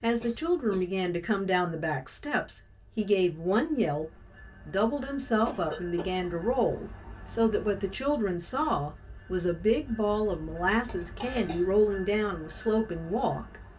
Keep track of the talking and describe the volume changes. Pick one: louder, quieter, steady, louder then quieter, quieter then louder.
steady.